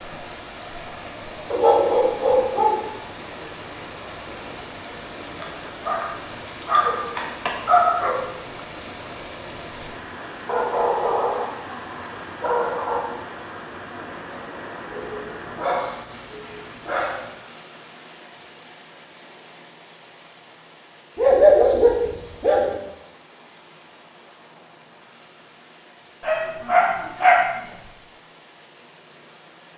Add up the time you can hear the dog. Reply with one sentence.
The dog can be heard for 12 seconds in total.